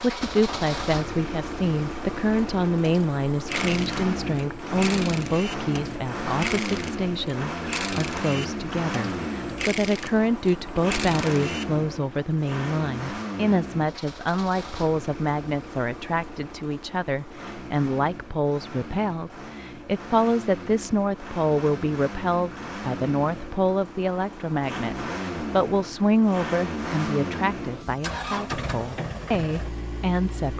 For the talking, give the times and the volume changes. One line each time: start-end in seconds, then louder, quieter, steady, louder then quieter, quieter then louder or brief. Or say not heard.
0.0-30.5 steady.